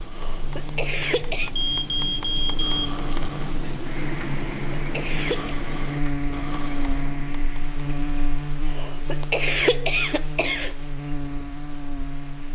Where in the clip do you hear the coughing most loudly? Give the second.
10 s.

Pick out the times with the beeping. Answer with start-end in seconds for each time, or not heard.
1.6-3.5.